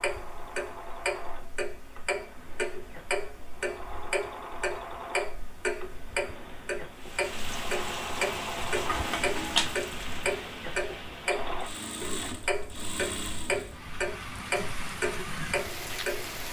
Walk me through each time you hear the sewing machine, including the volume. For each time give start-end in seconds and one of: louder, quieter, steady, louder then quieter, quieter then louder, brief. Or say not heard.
0.0-13.8 louder.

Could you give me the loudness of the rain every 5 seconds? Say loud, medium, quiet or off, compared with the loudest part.
off, loud, medium, loud.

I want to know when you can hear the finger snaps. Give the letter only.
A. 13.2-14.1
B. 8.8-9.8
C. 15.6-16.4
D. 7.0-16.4
B.